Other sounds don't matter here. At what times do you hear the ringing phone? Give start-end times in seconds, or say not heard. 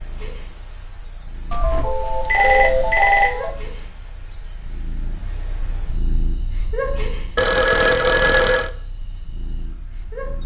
1.5-3.5, 7.3-8.7.